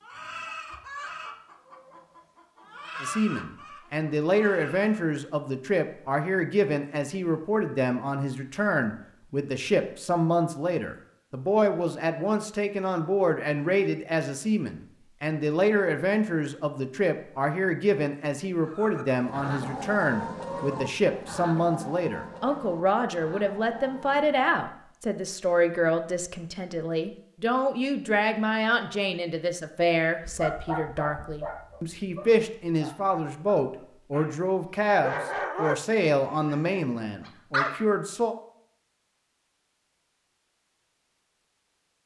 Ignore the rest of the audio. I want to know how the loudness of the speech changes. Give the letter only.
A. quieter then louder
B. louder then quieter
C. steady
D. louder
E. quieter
C.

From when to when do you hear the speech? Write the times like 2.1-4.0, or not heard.
3.0-38.4.